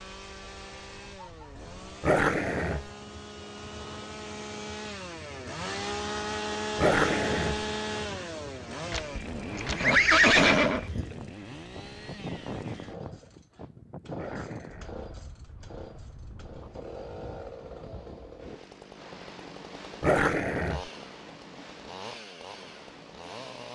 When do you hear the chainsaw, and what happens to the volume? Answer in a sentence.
You can hear the chainsaw from 0.0 to 23.7 s, getting louder then quieter.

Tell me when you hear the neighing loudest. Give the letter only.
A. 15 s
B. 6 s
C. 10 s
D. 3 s
C.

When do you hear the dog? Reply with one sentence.
The dog can be heard from 2.0 to 2.9 s, from 6.8 to 7.7 s, from 14.2 to 15.1 s and from 20.0 to 20.9 s.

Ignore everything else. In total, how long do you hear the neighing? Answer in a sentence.
You can hear the neighing for 2 seconds altogether.